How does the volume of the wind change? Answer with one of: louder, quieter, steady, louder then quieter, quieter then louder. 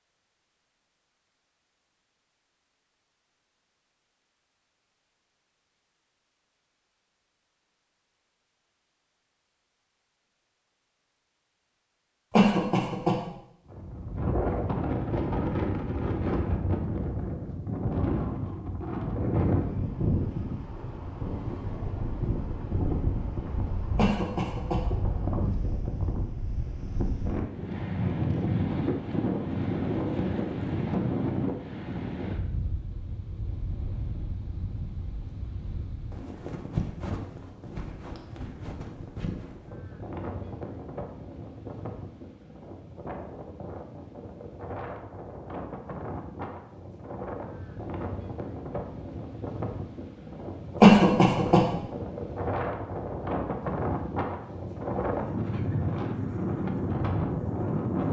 quieter then louder.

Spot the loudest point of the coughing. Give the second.
51 s.